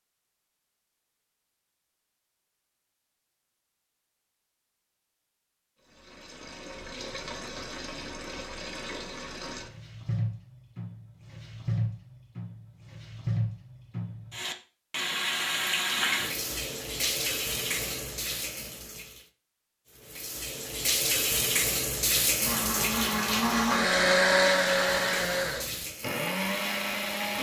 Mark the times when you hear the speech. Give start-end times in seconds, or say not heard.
not heard.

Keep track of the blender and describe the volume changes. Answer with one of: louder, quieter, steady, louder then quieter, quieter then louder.
louder then quieter.